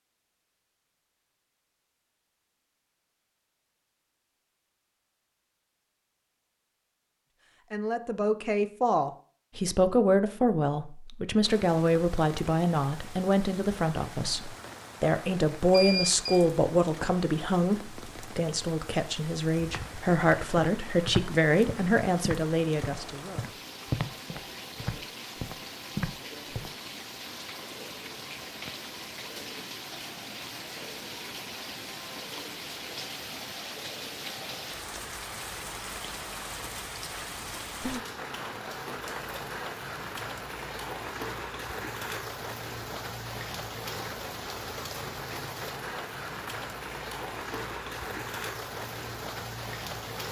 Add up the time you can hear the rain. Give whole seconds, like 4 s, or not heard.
39 s.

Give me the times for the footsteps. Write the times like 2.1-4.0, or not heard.
19.6-26.7.